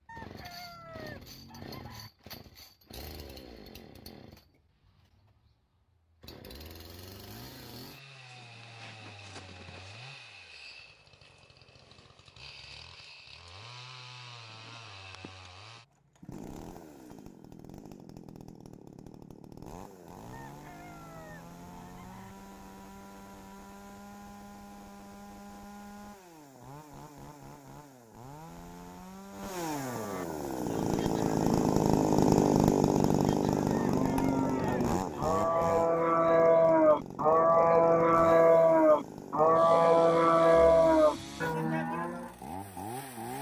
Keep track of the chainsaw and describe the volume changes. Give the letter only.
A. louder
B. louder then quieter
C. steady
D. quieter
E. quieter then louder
B.